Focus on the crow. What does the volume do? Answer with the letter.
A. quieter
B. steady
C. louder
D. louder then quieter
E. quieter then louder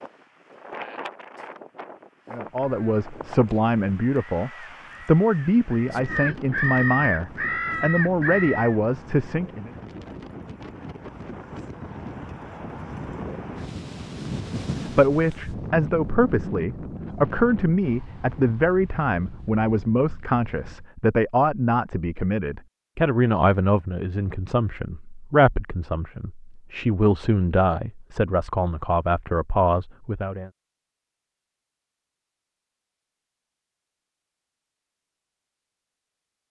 C.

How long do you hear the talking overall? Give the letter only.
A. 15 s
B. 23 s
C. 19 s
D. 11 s
B.